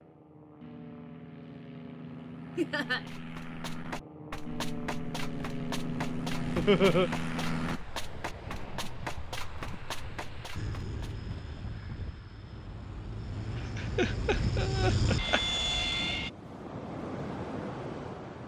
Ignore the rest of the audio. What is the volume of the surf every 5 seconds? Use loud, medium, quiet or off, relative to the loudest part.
off, medium, medium, loud.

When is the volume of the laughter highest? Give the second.
7 s.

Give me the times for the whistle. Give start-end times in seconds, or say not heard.
not heard.